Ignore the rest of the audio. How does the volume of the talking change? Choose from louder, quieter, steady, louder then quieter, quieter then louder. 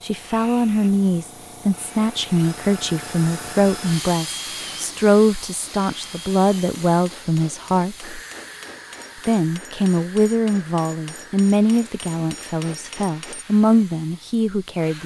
steady.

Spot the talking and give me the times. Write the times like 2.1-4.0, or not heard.
0.0-8.2, 9.2-15.0.